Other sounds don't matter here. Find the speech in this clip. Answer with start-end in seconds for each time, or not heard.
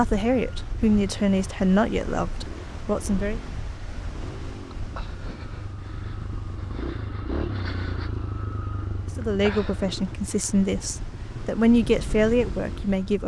0.0-3.4, 9.2-13.2.